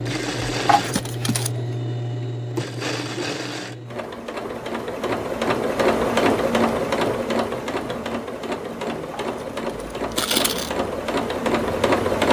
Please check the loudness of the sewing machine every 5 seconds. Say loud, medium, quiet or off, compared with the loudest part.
medium, loud, loud.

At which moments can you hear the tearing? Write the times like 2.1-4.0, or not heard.
0.7-1.5, 9.1-10.7.